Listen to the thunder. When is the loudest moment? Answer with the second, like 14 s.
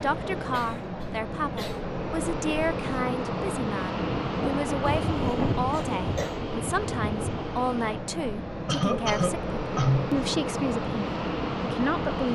5 s.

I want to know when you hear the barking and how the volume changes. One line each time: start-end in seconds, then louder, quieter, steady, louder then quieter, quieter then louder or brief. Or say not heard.
not heard.